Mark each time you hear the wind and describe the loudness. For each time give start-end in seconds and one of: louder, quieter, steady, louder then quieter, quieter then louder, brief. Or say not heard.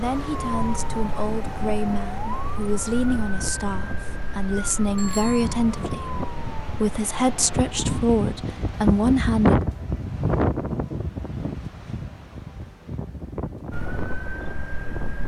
0.0-15.2 louder then quieter.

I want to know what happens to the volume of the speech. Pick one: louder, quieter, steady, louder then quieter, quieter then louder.
louder.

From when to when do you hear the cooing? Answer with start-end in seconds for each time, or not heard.
not heard.